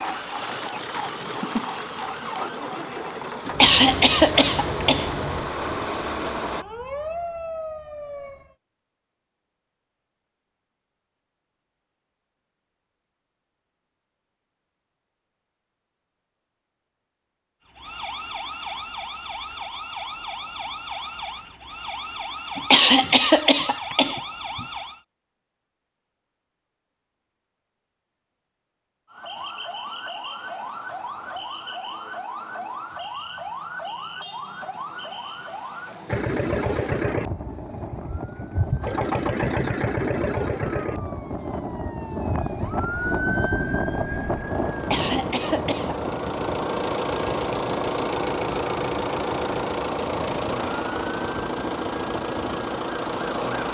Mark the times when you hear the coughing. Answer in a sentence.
The coughing can be heard from 3.5 to 5.1 s, from 22.6 to 24.6 s and from 44.8 to 46.0 s.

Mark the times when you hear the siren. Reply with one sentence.
The siren can be heard from 0.0 to 8.6 s, from 17.6 to 25.0 s and from 29.1 to 53.5 s.